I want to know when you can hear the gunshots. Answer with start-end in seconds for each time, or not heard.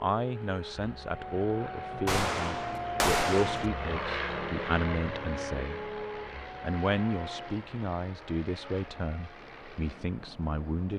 2.0-3.7.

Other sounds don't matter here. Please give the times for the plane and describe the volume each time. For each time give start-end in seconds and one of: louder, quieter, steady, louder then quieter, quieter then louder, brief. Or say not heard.
0.0-10.9 louder then quieter.